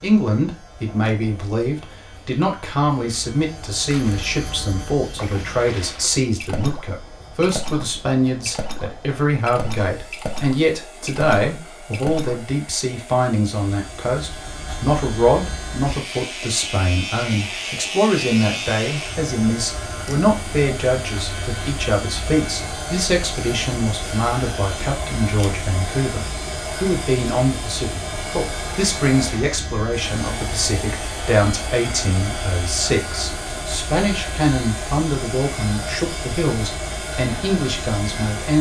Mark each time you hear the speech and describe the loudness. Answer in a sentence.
The speech can be heard from 0.0 to 38.5 s, at a steady volume.